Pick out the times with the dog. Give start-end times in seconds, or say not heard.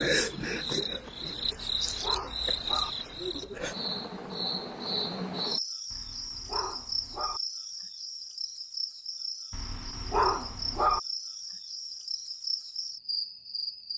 1.4-2.9, 5.9-7.4, 9.5-11.0.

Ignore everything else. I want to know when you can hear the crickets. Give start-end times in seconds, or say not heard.
0.0-13.9.